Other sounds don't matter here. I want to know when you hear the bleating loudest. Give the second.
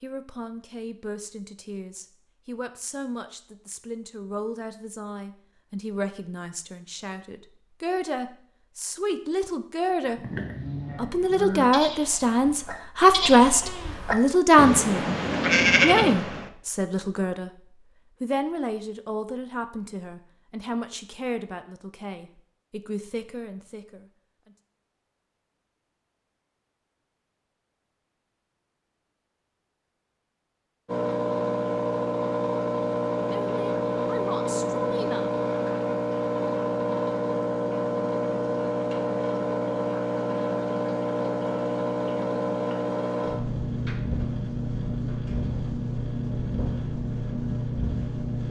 16 s.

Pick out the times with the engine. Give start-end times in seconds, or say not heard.
30.9-48.4.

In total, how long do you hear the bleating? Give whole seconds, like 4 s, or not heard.
6 s.